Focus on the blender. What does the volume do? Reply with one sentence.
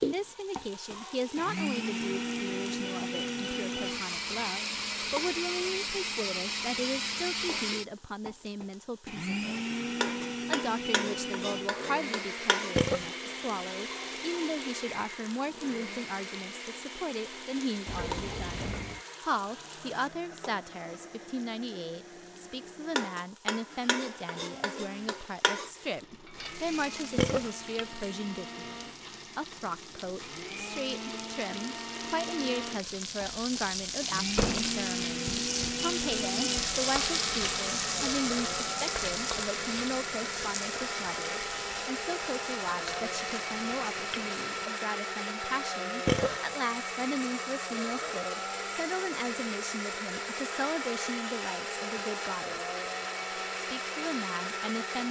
The loudness of the blender goes down, then up.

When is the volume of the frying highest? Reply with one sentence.
The loudest moment of the frying is at 37 seconds.